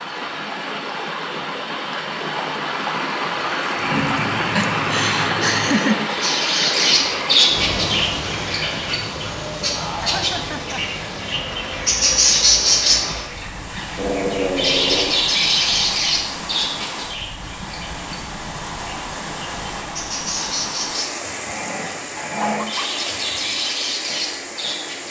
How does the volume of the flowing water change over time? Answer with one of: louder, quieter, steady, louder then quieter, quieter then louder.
quieter.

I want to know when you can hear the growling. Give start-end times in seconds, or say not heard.
3.8-5.8, 13.9-15.2, 21.2-22.6.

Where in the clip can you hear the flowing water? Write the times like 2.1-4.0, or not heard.
0.0-25.0.